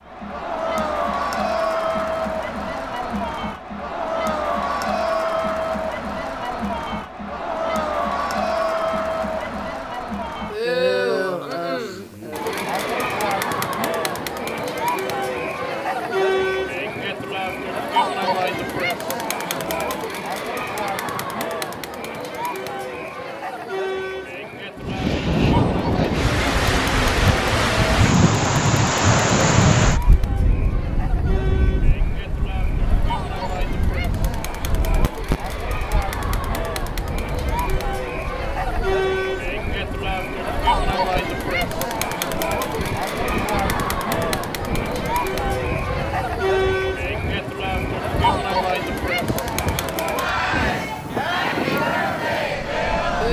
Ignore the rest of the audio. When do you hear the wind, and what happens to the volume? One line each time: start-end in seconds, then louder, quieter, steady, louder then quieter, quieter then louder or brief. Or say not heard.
24.8-53.2 quieter then louder.